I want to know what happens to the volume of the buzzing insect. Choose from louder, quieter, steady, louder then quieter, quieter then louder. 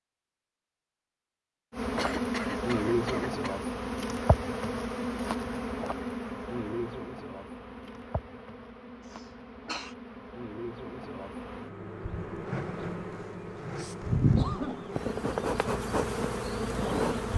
quieter then louder.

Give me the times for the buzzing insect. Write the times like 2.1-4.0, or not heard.
1.7-17.3.